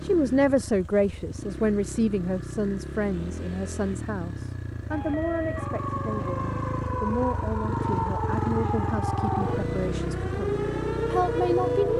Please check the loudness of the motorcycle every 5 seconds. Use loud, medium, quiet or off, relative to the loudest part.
medium, loud, loud.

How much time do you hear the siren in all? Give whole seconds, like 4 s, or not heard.
7 s.